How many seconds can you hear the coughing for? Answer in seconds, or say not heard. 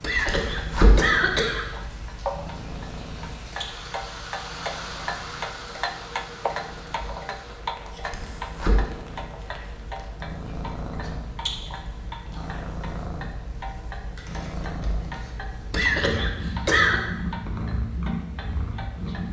3 s.